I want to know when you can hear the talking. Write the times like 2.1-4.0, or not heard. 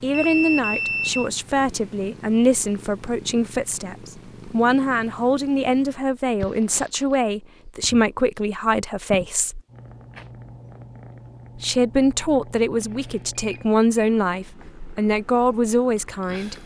0.0-9.6, 11.6-16.6.